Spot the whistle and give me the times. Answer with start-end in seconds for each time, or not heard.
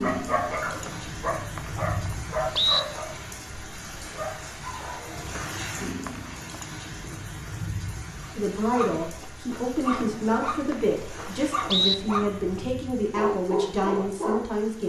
0.8-2.8, 5.3-6.7, 10.0-11.9.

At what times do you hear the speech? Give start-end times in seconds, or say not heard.
8.3-14.8.